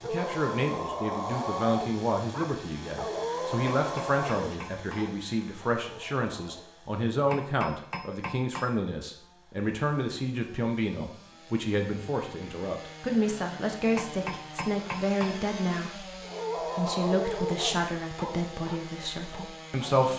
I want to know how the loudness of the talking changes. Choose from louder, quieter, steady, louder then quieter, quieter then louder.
steady.